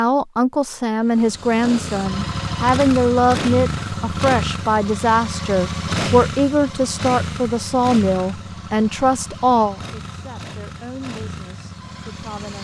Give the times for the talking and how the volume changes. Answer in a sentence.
You can hear the talking from 0.0 to 12.5 s, getting quieter.